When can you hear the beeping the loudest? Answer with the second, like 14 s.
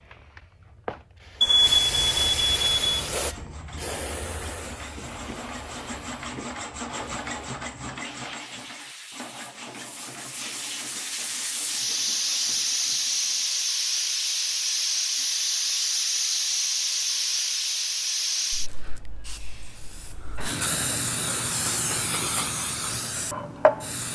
2 s.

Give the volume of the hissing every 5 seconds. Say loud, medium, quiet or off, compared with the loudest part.
medium, quiet, loud, loud, loud.